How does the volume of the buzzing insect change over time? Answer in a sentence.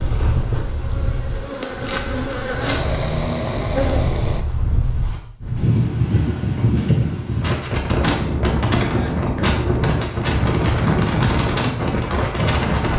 The loudness of the buzzing insect goes up, then down.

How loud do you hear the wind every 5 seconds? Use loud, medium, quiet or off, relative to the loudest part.
medium, loud, loud.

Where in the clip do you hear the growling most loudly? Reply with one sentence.
The loudest moment of the growling is at 3 seconds.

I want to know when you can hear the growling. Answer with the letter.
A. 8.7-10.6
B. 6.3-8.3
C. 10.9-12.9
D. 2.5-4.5
D.